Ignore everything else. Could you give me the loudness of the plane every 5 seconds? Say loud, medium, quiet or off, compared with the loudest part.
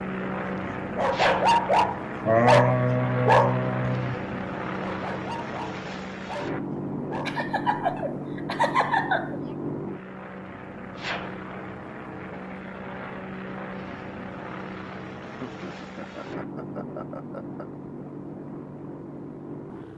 loud, loud, medium, medium.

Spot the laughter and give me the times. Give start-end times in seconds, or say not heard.
2.2-4.2, 7.2-9.4, 15.2-17.6.